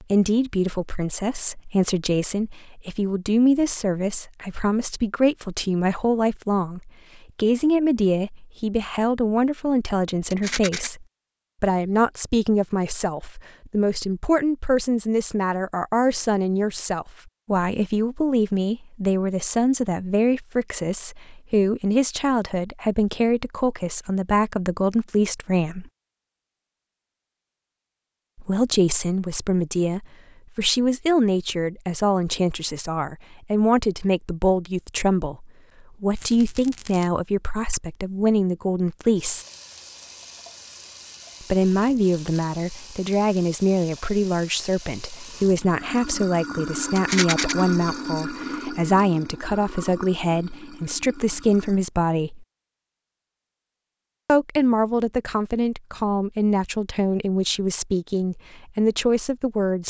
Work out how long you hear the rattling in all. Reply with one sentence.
You can hear the rattling for 2 seconds altogether.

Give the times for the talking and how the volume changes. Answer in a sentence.
You can hear the talking from 0.0 to 25.9 s, at a steady volume; from 28.4 to 39.5 s, at a steady volume; from 41.4 to 52.5 s, at a steady volume; and from 54.2 to 59.8 s, at a steady volume.